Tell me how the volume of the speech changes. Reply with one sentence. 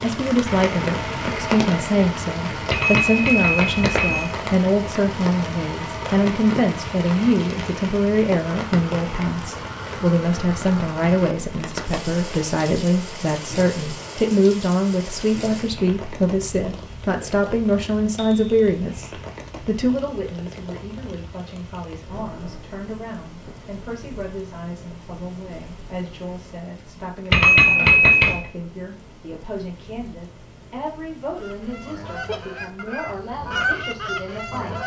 The volume of the speech goes down.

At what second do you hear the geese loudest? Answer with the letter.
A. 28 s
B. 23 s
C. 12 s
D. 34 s
D.